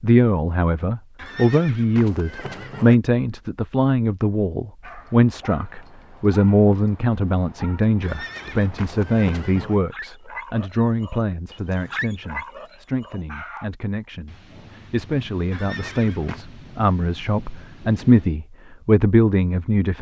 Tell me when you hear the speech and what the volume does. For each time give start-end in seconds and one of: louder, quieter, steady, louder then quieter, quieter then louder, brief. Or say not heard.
0.0-19.9 quieter then louder.